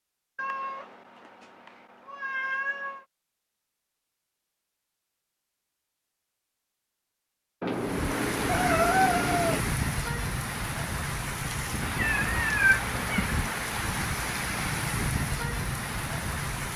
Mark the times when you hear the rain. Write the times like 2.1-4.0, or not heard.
7.7-16.7.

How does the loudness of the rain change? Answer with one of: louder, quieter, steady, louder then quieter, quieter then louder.
steady.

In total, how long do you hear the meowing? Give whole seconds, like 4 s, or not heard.
6 s.